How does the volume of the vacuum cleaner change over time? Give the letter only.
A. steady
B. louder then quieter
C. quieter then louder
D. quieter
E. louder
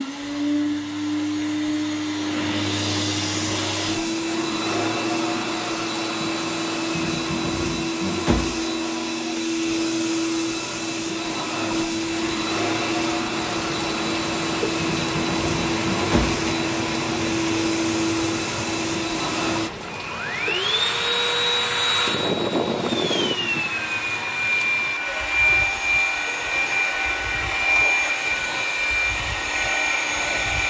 A.